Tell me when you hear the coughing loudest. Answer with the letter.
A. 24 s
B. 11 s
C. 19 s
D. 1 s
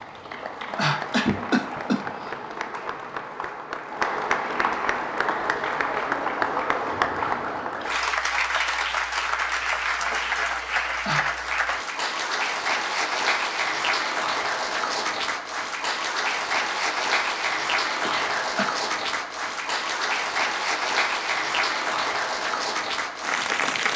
D.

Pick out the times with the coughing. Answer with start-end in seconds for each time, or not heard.
0.2-2.3, 10.5-11.2, 18.0-18.6.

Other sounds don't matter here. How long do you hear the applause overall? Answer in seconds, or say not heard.
24 s.